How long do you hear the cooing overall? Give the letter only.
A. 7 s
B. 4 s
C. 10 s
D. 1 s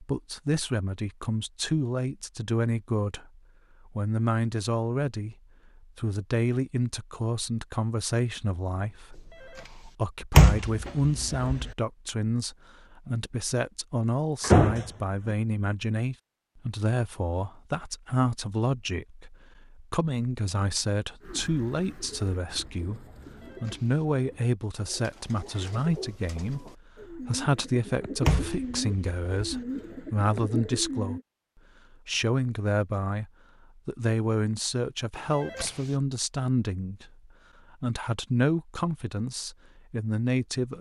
C.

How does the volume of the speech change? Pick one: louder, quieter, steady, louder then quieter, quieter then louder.
steady.